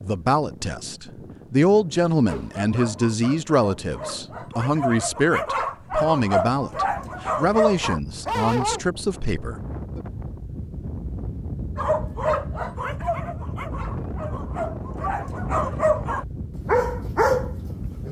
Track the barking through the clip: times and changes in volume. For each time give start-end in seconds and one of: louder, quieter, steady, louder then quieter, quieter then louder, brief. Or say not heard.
2.2-8.8 louder
11.8-18.0 quieter then louder.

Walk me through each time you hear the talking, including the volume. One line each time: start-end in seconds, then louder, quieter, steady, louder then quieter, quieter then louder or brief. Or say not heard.
0.0-10.0 quieter.